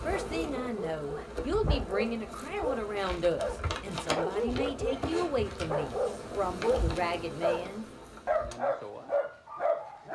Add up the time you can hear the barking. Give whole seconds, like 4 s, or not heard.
10 s.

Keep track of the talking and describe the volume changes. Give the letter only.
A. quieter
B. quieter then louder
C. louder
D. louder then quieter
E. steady
E.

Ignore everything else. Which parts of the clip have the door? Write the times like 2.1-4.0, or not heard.
not heard.